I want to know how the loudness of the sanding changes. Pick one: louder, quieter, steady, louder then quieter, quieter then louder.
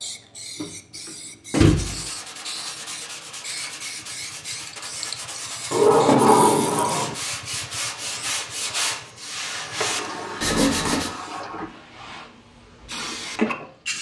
louder.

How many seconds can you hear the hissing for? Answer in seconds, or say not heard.
14 s.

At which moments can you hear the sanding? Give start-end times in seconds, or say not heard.
1.6-11.1.